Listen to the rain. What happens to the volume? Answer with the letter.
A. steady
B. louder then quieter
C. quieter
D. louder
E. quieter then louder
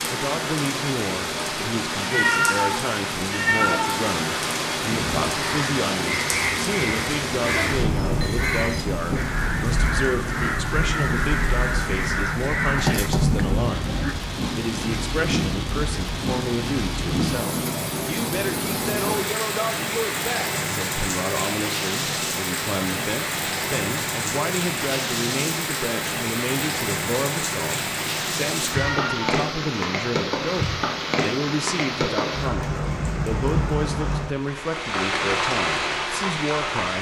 A.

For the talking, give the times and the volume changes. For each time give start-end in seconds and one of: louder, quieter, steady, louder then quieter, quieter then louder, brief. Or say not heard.
0.1-36.9 steady.